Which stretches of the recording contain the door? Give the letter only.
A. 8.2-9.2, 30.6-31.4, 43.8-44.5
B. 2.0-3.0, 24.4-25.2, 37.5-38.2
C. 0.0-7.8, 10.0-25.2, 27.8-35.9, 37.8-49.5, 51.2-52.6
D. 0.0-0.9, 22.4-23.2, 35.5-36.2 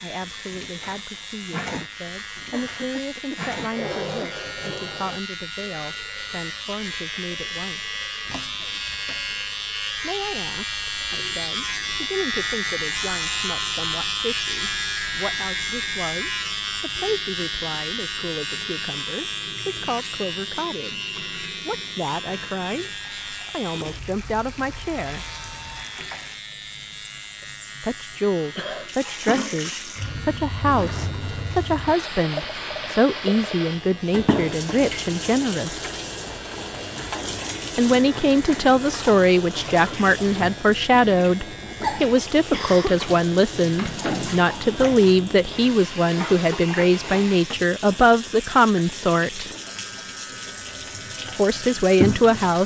A.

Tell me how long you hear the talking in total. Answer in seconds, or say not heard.
44 s.